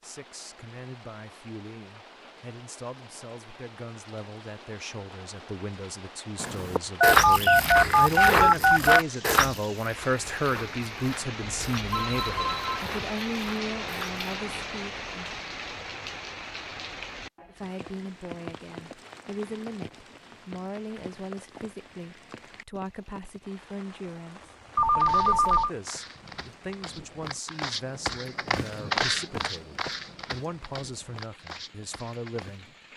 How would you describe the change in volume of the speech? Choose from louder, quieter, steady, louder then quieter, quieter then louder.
louder then quieter.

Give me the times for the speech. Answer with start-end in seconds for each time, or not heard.
0.0-15.3, 17.4-32.7.